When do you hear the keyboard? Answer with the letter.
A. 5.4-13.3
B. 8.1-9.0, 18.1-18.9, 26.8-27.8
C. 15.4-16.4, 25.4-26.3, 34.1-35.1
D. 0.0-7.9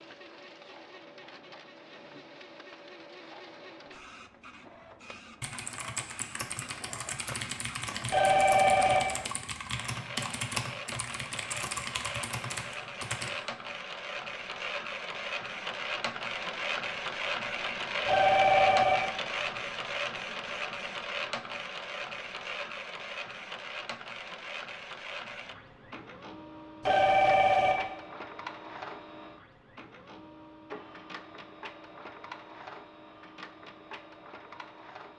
A.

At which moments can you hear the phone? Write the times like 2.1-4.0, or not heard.
8.1-9.0, 18.1-18.9, 26.8-27.8.